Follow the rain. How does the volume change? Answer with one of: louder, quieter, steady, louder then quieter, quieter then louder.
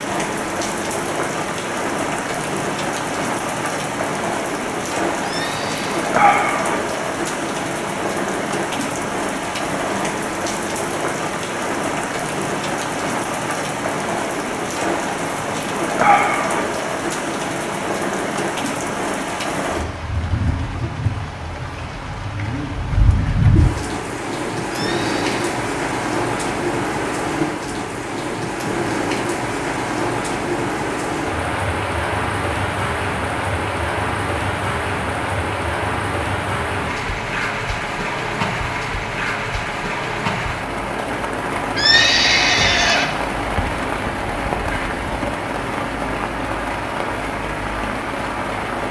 steady.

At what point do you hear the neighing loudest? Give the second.
42 s.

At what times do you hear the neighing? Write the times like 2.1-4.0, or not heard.
5.2-6.2, 24.7-25.6, 41.8-43.1.